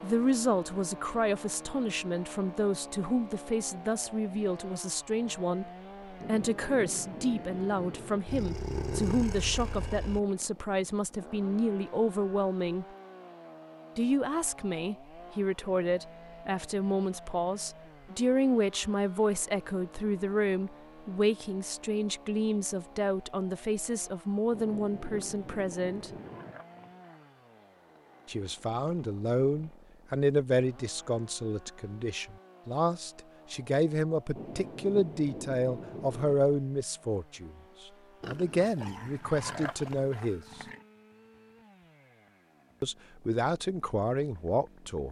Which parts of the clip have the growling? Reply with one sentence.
The growling can be heard from 8.2 to 10.2 s, from 25.1 to 27.1 s and from 38.2 to 40.9 s.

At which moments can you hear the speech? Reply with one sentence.
The speech can be heard from 0.0 to 12.8 s, from 13.9 to 26.1 s, from 28.2 to 40.6 s and from 42.8 to 45.0 s.